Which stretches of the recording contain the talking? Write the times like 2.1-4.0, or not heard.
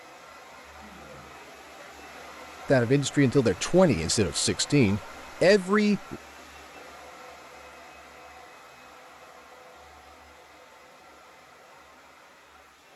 2.6-6.2.